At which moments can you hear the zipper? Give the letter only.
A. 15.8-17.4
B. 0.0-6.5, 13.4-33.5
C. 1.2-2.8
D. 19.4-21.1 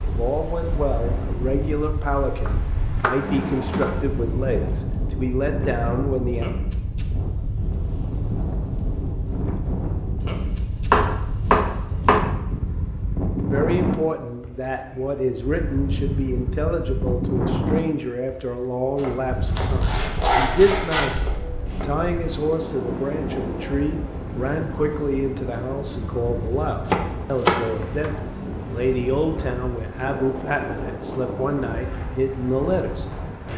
D.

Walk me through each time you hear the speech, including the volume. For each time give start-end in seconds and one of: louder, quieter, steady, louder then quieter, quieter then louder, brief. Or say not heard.
0.0-6.5 steady
13.4-33.5 steady.